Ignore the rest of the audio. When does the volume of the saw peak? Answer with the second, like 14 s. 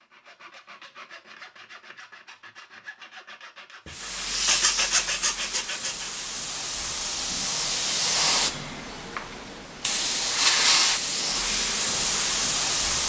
5 s.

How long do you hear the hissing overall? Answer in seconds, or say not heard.
9 s.